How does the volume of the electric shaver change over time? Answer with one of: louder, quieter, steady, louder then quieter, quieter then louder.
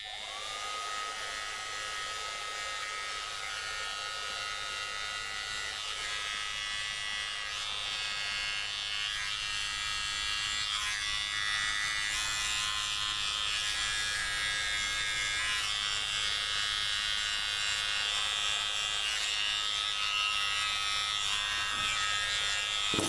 louder.